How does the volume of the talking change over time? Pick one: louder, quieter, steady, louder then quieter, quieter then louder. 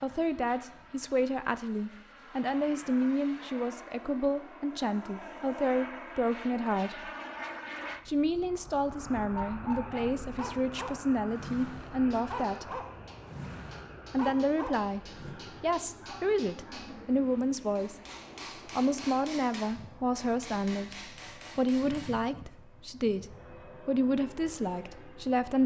steady.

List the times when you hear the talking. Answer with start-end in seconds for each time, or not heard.
0.0-7.1, 8.1-12.8, 14.1-17.9, 18.8-25.6.